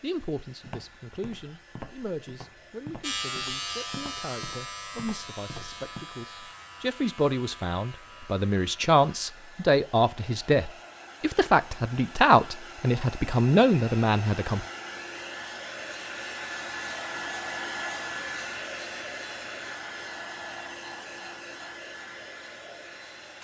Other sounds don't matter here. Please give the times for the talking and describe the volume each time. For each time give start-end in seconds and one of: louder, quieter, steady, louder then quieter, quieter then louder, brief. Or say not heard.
0.0-14.7 louder.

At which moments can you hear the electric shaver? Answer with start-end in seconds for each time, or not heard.
3.0-9.3.